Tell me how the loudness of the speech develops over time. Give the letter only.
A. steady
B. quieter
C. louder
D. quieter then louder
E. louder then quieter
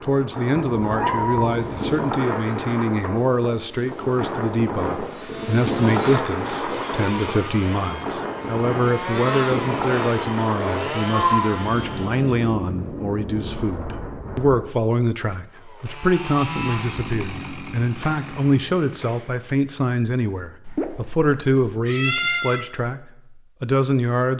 A.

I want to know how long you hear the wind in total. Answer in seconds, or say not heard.
15 s.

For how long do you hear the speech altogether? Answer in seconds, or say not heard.
24 s.